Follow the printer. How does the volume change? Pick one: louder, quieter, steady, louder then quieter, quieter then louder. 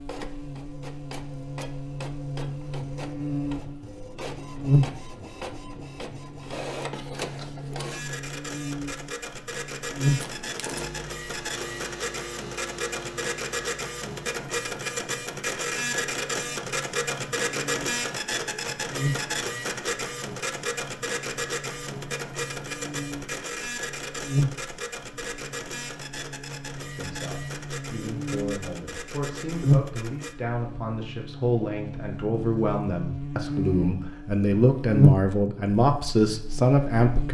louder then quieter.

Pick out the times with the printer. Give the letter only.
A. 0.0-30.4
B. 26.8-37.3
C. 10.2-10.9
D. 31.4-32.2
A.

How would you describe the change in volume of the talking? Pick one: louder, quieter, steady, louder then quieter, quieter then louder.
louder.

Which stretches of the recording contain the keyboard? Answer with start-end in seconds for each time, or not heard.
not heard.